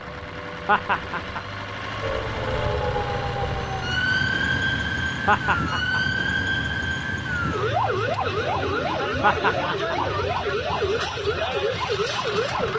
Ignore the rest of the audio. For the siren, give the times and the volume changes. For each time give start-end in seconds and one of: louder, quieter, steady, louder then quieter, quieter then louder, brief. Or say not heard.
0.0-12.7 louder.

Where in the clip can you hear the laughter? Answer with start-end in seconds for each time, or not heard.
0.7-1.4, 5.2-6.0, 9.2-10.0.